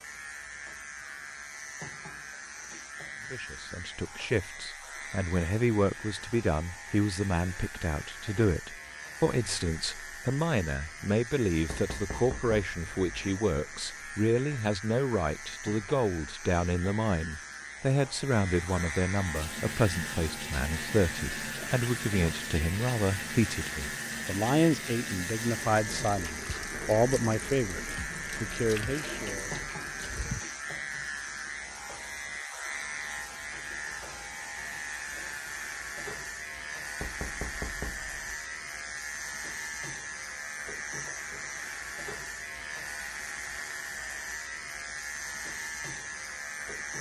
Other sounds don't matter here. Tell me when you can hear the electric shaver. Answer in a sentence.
You can hear the electric shaver from 0.0 to 46.9 s.